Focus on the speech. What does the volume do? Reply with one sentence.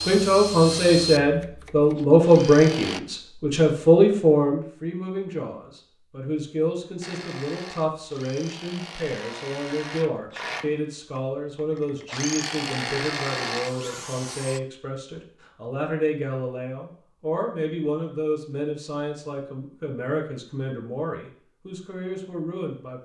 The loudness of the speech goes down.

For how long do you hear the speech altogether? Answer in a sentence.
The speech can be heard for 23 seconds in total.